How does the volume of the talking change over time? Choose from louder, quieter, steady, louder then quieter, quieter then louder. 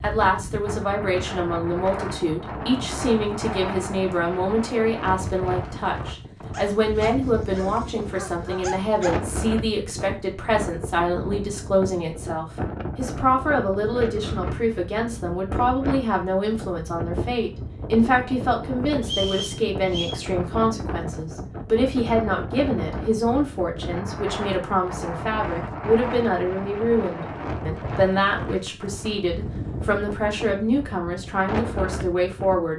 steady.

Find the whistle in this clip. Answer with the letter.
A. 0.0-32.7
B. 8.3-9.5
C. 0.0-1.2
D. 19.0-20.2
D.